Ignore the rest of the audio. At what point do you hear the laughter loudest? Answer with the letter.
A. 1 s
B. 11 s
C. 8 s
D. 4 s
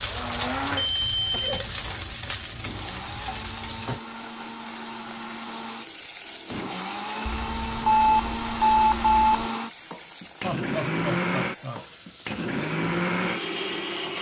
B.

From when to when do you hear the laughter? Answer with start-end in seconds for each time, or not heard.
10.4-11.8.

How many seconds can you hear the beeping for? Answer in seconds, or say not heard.
3 s.